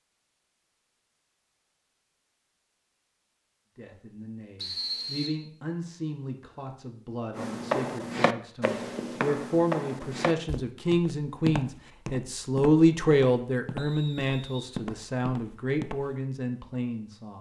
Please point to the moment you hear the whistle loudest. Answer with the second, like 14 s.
5 s.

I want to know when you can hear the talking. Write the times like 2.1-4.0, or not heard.
3.8-17.3.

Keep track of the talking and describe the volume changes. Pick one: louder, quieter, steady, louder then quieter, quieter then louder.
louder then quieter.